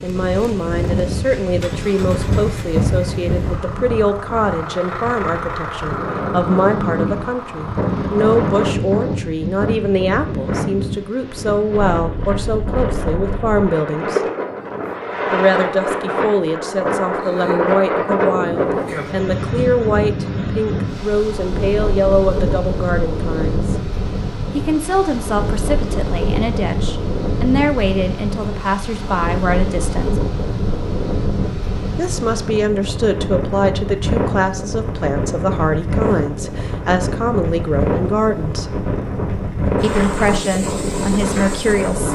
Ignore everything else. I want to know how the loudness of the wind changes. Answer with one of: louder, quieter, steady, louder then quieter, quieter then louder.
steady.